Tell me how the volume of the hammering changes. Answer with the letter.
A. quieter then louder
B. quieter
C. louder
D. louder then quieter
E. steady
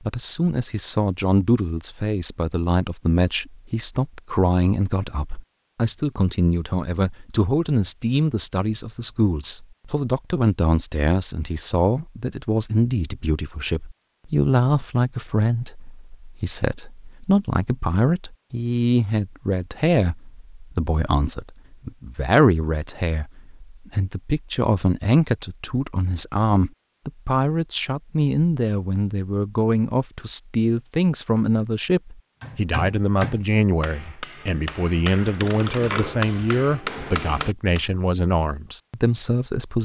A.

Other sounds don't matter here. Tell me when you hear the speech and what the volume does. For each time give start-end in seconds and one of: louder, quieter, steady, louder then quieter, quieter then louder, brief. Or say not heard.
0.0-39.8 steady.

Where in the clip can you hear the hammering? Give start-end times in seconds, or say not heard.
32.4-37.9.